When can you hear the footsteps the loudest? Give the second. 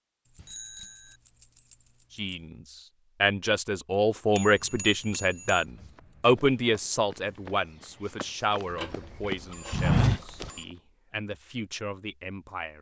10 s.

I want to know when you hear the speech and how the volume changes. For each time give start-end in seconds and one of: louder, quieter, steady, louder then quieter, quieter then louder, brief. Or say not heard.
2.1-12.7 quieter.